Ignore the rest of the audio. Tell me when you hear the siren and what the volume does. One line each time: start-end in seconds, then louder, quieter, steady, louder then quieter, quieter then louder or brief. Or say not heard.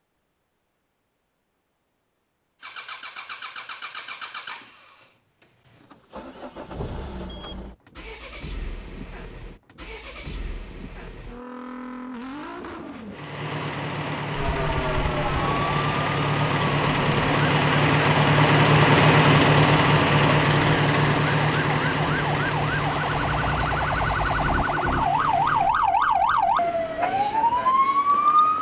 14.3-28.5 quieter then louder.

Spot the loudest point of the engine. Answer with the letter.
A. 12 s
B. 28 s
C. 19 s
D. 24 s
C.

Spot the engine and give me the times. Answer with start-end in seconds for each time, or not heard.
2.6-25.8.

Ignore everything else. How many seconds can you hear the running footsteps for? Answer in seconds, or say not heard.
not heard.